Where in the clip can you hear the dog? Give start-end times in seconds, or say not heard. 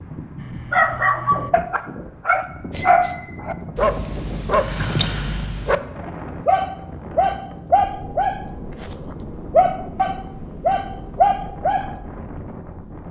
0.4-11.9.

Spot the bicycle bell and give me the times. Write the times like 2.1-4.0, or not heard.
2.7-3.6.